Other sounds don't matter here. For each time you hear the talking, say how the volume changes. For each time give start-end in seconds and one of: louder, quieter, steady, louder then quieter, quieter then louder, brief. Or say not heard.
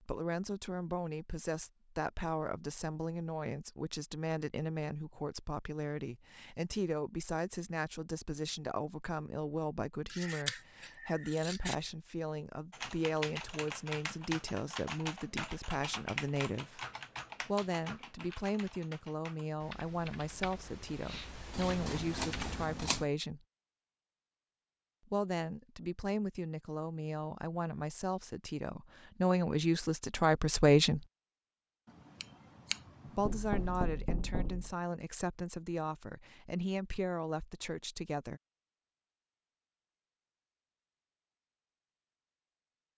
0.0-16.8 steady
17.4-23.4 steady
25.1-31.1 louder
33.0-38.4 steady.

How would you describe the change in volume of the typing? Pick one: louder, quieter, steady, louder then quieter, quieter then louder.
quieter.